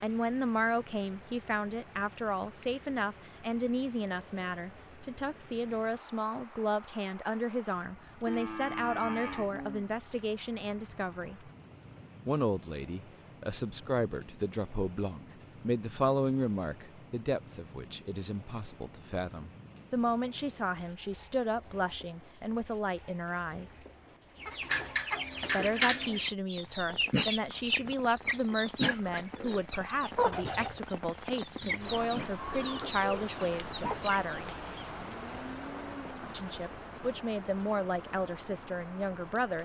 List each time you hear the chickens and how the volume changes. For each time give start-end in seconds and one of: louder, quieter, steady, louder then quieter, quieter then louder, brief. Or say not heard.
24.4-34.9 quieter.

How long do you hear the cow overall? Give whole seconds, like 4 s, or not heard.
3 s.